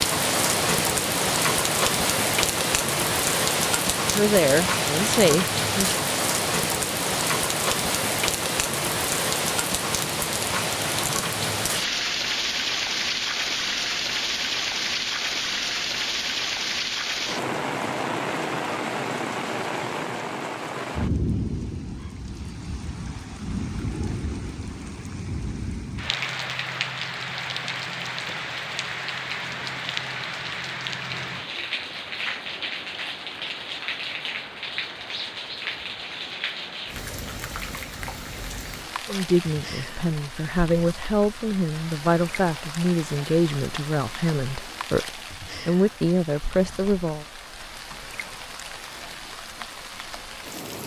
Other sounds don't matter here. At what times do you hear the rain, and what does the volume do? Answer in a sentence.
You can hear the rain from 0.0 to 50.8 s, getting quieter.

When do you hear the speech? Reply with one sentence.
You can hear the speech from 4.0 to 6.0 s and from 39.0 to 47.2 s.